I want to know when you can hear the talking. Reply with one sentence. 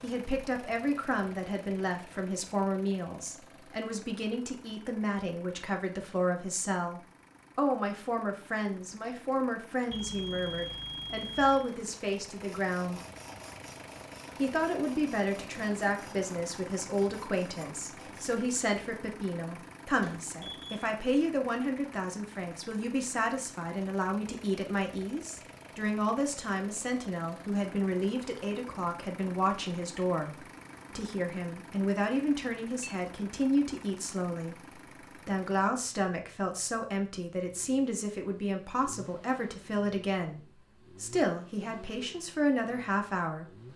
You can hear the talking from 0.0 to 13.0 s and from 14.3 to 43.6 s.